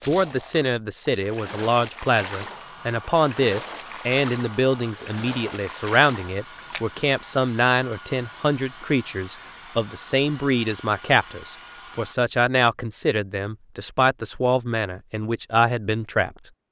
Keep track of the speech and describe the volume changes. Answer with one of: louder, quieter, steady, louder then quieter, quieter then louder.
steady.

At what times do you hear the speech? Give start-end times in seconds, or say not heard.
0.1-16.5.